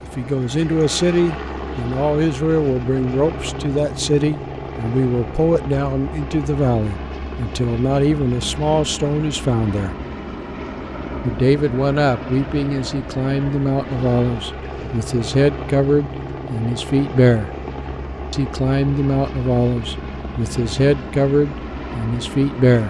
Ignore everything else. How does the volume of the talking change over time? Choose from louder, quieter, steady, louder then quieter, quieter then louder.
steady.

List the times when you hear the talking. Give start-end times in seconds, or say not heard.
0.0-9.9, 11.2-17.5, 18.3-22.8.